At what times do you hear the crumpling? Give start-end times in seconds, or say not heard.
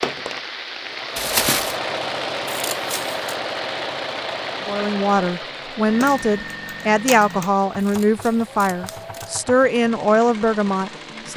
1.1-1.8, 6.0-8.0.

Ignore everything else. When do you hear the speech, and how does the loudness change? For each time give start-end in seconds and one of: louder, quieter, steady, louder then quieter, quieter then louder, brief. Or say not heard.
4.7-11.3 steady.